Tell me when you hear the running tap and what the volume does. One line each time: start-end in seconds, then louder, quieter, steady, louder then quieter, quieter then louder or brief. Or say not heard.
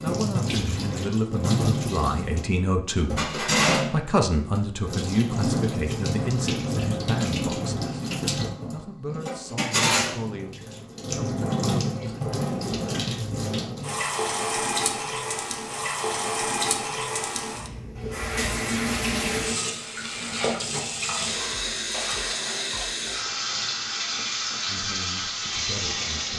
0.0-26.3 steady.